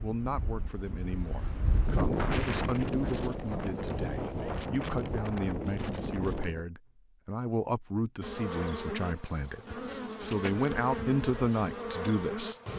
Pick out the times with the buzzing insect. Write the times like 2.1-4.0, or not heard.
8.2-12.7.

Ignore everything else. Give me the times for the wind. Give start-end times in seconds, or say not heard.
0.0-6.7.